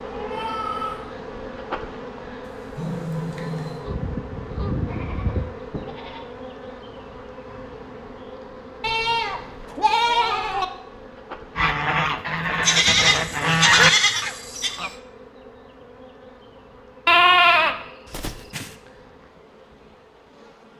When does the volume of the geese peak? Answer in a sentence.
The loudest moment of the geese is at 14 seconds.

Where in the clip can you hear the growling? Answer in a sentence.
You can hear the growling from 2.4 to 3.8 s.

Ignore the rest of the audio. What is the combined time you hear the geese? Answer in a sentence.
The geese can be heard for 5 seconds in total.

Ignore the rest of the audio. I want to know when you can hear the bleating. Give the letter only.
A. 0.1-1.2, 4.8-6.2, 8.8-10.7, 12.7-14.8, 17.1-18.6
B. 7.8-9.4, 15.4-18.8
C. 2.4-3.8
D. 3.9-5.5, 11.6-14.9
A.